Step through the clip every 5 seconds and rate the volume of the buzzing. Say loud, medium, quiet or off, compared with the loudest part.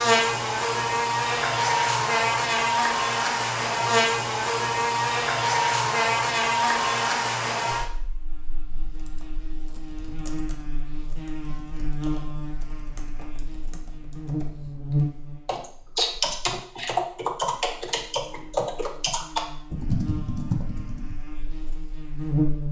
loud, loud, medium, quiet, medium.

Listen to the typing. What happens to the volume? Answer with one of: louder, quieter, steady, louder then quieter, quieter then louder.
louder.